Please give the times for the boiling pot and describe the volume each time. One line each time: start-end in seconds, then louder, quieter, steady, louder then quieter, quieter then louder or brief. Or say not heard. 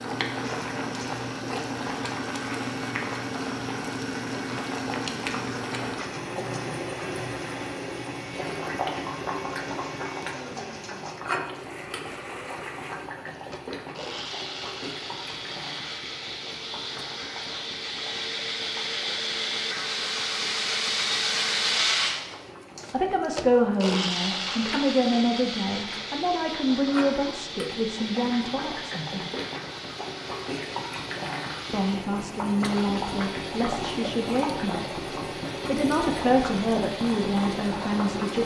0.0-38.4 quieter then louder.